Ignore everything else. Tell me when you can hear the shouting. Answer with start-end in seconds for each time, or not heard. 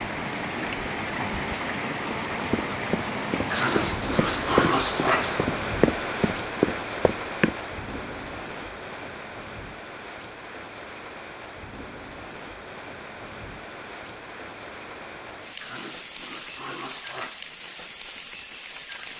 not heard.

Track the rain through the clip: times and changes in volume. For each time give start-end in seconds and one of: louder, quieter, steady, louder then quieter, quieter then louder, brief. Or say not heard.
0.0-19.1 quieter.